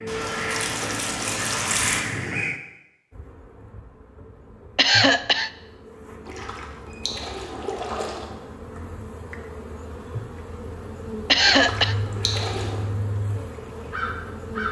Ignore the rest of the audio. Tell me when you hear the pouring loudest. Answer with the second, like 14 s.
2 s.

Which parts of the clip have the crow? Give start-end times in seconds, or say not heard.
0.0-2.6, 11.8-14.6.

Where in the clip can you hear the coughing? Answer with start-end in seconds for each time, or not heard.
4.8-5.5, 11.2-11.9.